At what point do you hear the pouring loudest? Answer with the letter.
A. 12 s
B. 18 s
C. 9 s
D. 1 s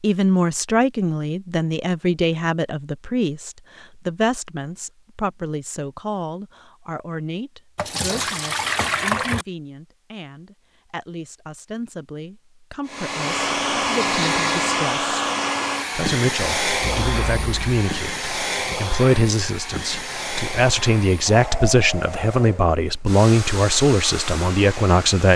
C.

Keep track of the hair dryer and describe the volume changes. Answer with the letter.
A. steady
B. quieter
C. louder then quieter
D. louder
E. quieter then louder
B.